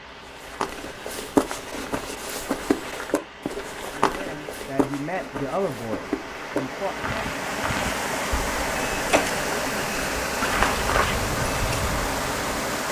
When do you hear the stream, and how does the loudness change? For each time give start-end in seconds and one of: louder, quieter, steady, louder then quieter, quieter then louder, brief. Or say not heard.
0.0-12.8 louder.